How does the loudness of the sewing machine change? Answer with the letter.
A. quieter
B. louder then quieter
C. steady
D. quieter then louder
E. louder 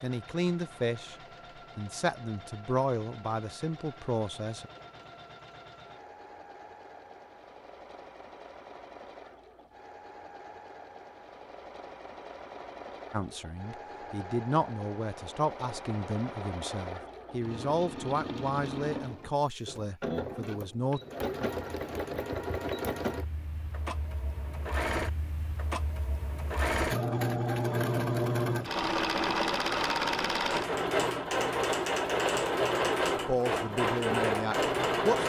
E.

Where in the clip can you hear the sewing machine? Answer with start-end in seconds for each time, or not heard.
0.0-35.2.